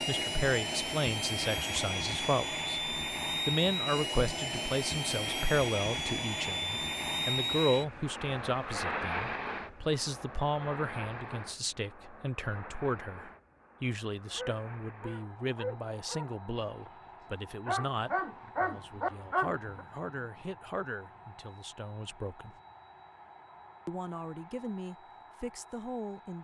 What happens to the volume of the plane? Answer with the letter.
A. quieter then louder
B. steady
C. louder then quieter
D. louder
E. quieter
E.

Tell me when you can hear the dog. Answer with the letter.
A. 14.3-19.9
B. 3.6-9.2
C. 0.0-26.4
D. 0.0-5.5
A.